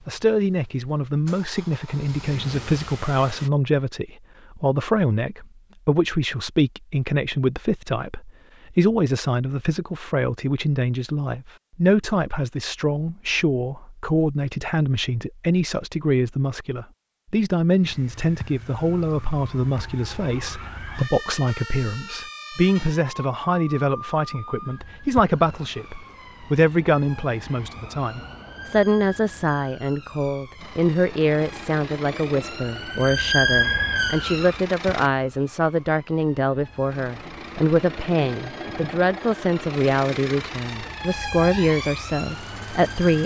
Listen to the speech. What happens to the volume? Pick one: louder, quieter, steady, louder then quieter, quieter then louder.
steady.